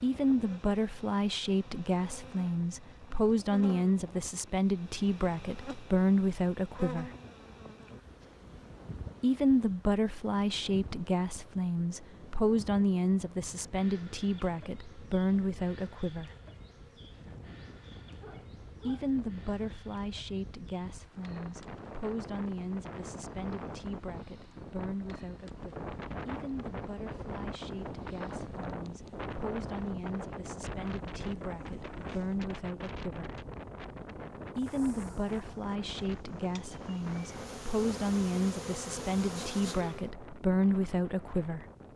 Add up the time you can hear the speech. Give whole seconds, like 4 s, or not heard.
36 s.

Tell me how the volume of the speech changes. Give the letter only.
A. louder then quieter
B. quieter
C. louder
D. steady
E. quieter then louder
E.